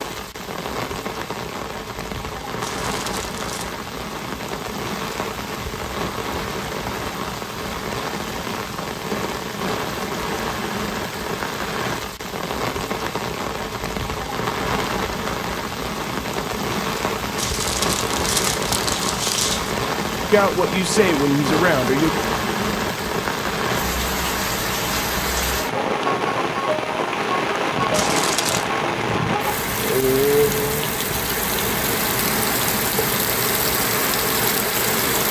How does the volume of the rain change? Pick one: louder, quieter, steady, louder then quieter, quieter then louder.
louder.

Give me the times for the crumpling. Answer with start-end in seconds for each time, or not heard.
2.6-3.8, 17.4-19.8, 27.9-28.7.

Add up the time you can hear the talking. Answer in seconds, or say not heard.
2 s.